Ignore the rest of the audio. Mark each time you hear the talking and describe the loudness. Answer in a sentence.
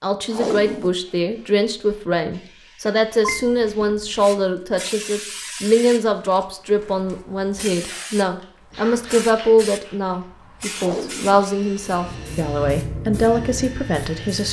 The talking can be heard from 0.0 to 14.4 s, at a steady volume.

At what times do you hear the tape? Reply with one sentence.
The tape can be heard from 0.3 to 0.9 s and from 10.8 to 11.4 s.